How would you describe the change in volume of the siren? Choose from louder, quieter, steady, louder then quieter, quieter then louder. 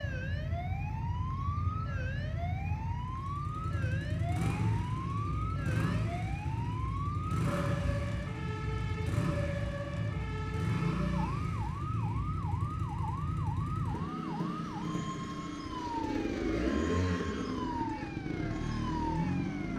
steady.